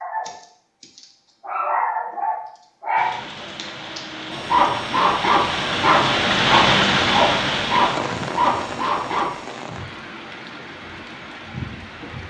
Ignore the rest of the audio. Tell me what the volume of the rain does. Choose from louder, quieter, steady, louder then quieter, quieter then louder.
louder then quieter.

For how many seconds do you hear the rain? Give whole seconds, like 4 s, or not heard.
9 s.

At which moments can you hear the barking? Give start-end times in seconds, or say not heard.
0.0-9.4.